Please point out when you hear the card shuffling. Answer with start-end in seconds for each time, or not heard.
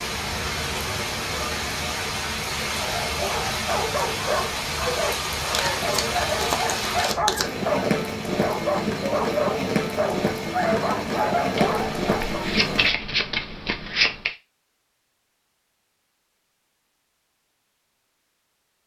5.5-7.5, 11.6-14.3.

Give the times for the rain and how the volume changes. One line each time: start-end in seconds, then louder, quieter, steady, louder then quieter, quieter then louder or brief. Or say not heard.
0.0-12.9 steady.